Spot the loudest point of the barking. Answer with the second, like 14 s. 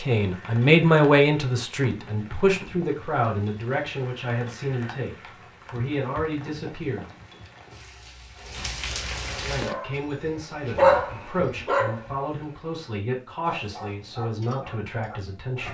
11 s.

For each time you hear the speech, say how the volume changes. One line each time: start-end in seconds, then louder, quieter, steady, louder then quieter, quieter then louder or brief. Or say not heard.
0.0-7.1 quieter
9.2-15.6 steady.